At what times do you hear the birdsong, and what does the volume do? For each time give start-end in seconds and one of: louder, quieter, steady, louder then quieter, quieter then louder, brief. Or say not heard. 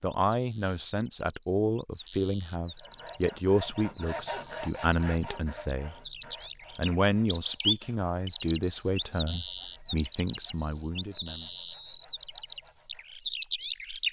0.2-14.0 louder.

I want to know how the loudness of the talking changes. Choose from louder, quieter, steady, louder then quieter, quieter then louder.
quieter.